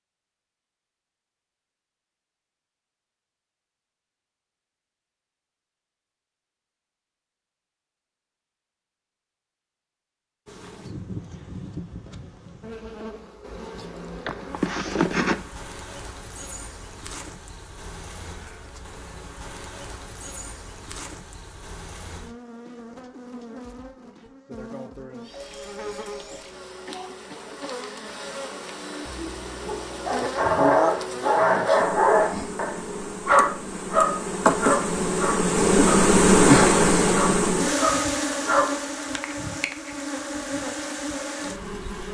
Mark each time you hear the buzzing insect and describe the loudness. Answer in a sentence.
The buzzing insect can be heard from 10.4 to 42.0 s, getting louder.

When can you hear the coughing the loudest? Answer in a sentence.
The volume of the coughing peaks at 15 seconds.